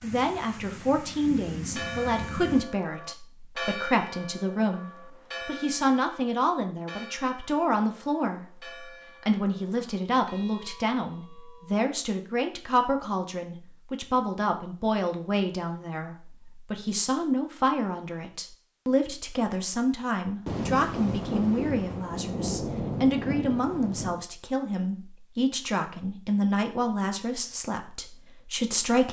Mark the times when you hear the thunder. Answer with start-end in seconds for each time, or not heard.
0.0-2.6, 20.4-24.2.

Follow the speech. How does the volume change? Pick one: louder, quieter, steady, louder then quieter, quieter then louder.
steady.